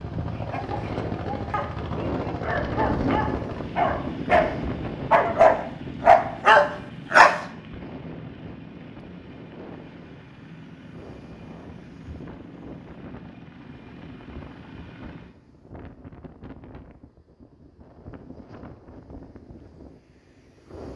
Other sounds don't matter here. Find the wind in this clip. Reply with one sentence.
The wind can be heard from 0.2 to 20.9 s.